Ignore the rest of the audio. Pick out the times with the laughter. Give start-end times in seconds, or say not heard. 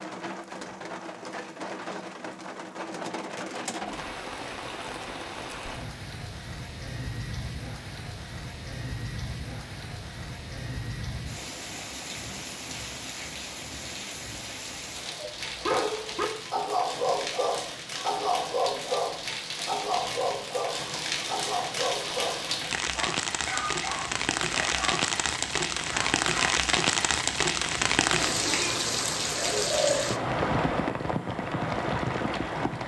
not heard.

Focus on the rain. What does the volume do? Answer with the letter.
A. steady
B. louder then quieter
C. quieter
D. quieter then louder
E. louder
E.